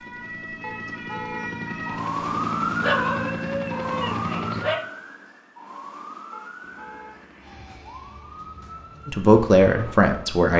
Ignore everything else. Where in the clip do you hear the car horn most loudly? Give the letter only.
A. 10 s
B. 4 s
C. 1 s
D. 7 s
C.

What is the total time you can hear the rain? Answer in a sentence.
You can't hear the rain here.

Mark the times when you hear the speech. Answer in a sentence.
You can hear the speech from 9.1 to 10.5 s.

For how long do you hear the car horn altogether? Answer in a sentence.
You can hear the car horn for 2 seconds altogether.